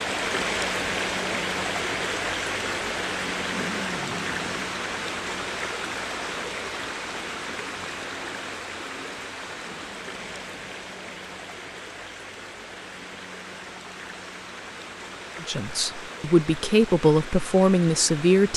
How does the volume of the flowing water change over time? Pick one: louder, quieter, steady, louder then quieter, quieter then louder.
quieter.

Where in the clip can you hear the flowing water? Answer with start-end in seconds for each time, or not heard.
0.0-18.5.